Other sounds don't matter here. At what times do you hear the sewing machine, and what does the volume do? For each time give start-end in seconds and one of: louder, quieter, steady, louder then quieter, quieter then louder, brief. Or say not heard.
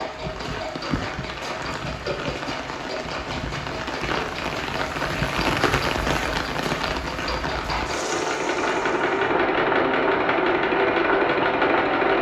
0.0-12.1 louder.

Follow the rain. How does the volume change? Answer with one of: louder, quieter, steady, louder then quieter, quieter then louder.
louder then quieter.